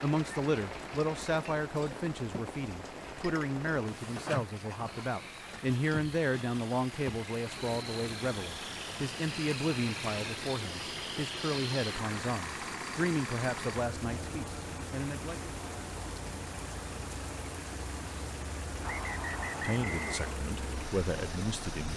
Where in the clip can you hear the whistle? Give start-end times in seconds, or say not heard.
18.8-20.4.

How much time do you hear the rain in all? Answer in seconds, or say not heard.
22 s.